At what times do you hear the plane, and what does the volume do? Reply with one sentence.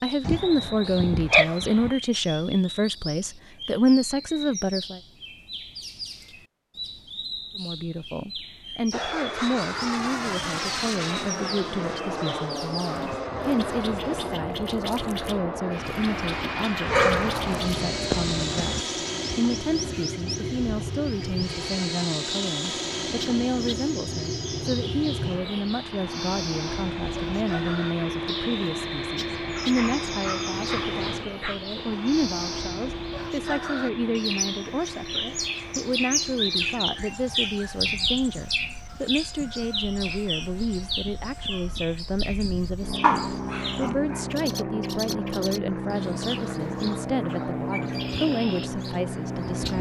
The plane can be heard from 8.9 to 49.7 s, getting quieter then louder.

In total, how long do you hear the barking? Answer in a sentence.
The barking can be heard for 7 seconds in total.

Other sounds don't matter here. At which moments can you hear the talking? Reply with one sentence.
The talking can be heard from 0.0 to 5.0 s and from 7.5 to 49.7 s.